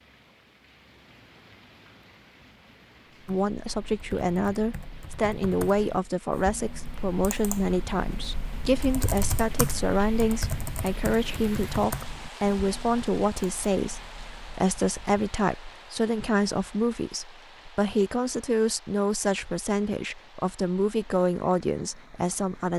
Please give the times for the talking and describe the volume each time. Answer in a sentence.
You can hear the talking from 3.2 to 22.7 s, at a steady volume.